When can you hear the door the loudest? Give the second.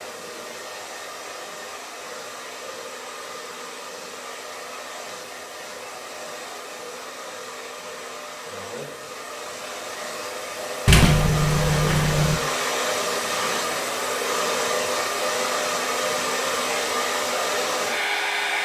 11 s.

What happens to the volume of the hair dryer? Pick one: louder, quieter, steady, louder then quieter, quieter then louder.
louder.